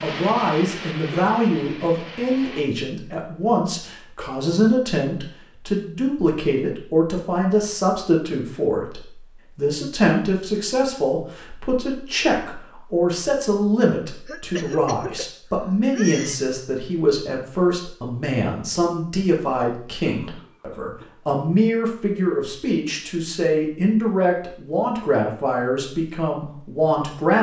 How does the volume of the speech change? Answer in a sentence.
The loudness of the speech stays about the same.